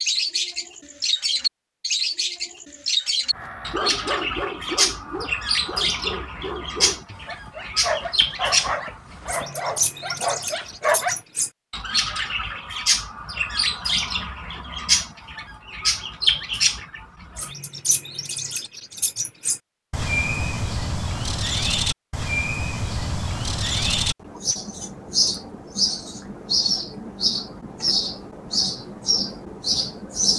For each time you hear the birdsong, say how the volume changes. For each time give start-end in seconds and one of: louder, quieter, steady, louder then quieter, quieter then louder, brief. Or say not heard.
0.0-30.3 steady.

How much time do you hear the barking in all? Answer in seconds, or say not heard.
8 s.